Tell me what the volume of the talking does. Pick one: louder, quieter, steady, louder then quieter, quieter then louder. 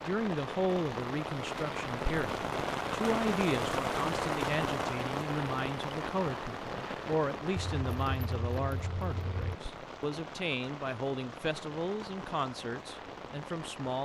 steady.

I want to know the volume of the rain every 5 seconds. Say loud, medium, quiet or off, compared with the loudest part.
loud, medium, medium.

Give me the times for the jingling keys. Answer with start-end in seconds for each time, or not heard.
7.5-9.6.